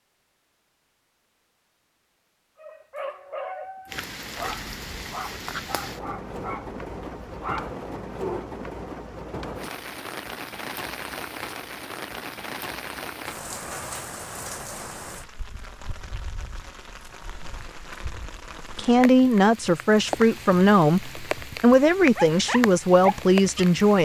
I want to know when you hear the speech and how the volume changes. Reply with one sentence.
You can hear the speech from 18.8 to 24.0 s, at a steady volume.